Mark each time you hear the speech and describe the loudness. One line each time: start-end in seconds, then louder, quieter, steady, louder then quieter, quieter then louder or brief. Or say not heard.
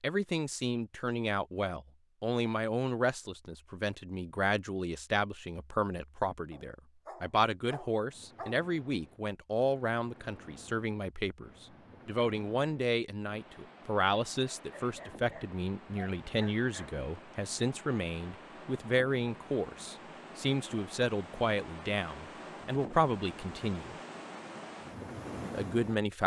0.0-23.9 steady
25.5-26.2 brief.